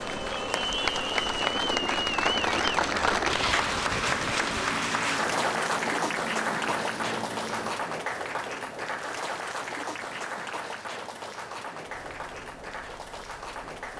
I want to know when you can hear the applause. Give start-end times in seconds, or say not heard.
0.0-13.9.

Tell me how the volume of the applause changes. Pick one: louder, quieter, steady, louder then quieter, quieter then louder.
quieter.